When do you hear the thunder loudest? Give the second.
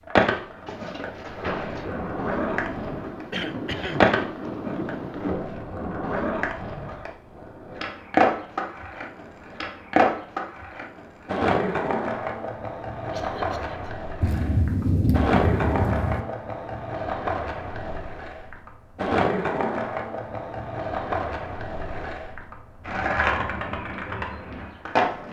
15 s.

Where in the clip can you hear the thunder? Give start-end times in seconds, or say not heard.
0.7-5.5, 14.2-16.2.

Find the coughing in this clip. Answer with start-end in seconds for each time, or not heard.
3.3-4.0, 13.1-13.9.